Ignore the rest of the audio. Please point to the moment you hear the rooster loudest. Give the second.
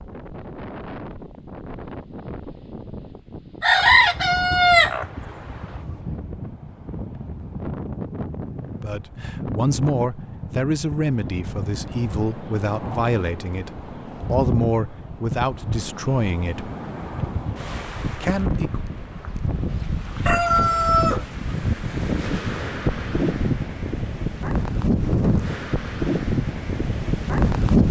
4 s.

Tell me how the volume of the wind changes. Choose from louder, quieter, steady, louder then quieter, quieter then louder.
louder.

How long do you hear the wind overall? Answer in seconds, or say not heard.
28 s.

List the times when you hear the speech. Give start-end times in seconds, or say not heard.
8.8-16.7, 18.1-18.8.